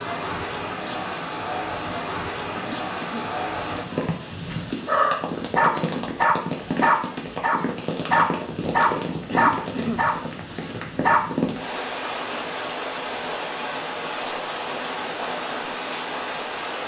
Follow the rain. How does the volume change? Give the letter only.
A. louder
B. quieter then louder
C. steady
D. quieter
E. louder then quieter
C.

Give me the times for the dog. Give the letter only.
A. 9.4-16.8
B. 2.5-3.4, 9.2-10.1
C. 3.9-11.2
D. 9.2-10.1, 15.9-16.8
C.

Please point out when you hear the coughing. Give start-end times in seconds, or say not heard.
2.5-3.4, 9.2-10.1.